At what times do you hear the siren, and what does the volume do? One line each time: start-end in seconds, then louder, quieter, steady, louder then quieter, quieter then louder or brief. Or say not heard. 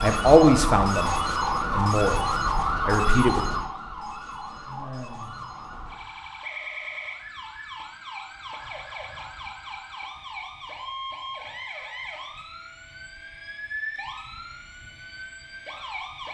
0.0-16.3 quieter.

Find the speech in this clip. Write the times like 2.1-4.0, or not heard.
0.0-2.2, 2.9-3.5.